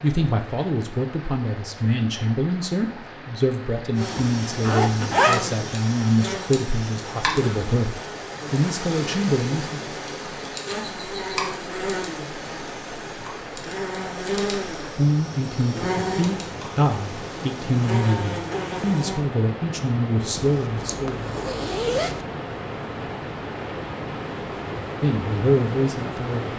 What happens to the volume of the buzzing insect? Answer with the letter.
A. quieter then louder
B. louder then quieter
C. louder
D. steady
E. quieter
D.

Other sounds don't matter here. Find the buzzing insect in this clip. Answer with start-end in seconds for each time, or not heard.
4.0-19.2.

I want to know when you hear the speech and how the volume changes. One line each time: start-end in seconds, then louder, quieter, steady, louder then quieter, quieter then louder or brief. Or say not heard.
0.0-10.0 steady
14.9-21.3 steady
25.0-26.5 brief.